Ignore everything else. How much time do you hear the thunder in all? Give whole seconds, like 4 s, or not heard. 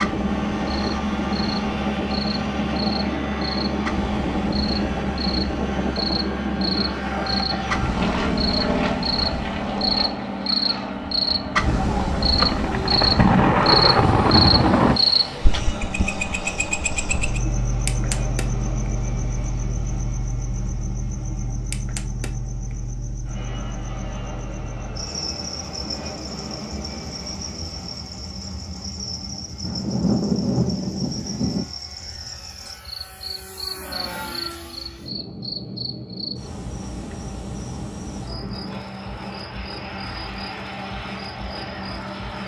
5 s.